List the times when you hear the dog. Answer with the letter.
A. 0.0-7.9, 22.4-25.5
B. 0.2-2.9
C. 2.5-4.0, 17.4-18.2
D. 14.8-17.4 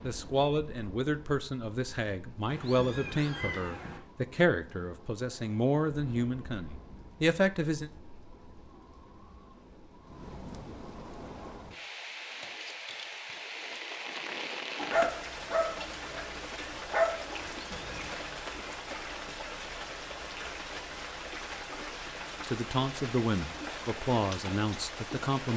D.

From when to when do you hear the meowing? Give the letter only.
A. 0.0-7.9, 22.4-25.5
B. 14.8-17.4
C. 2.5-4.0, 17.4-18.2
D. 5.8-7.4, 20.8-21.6
C.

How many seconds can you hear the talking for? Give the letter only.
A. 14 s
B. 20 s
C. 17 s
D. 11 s
D.